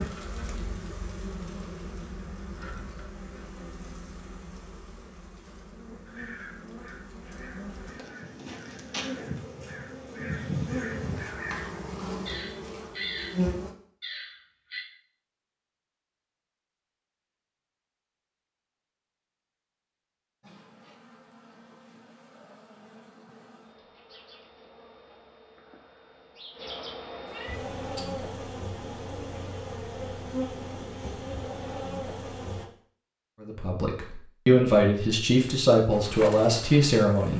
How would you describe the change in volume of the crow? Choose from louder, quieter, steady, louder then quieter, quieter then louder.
louder.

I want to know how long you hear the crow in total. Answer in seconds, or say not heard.
9 s.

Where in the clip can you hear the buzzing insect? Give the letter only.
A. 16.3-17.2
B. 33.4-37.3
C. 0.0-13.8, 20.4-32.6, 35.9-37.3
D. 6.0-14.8
C.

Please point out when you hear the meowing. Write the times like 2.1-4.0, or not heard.
27.2-28.2.